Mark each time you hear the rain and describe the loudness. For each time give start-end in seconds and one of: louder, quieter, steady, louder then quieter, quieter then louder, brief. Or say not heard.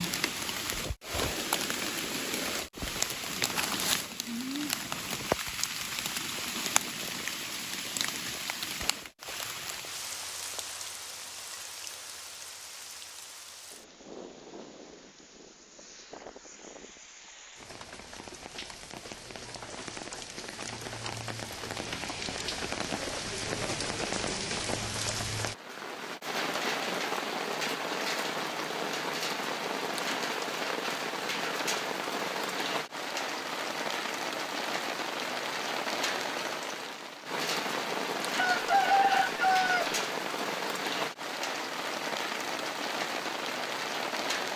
0.0-44.5 quieter then louder.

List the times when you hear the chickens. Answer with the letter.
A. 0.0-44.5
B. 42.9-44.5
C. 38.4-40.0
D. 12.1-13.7
C.